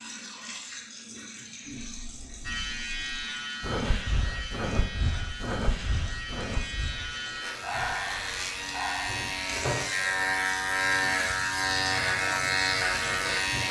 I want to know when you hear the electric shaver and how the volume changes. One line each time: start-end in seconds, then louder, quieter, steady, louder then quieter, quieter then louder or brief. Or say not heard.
2.4-13.6 louder.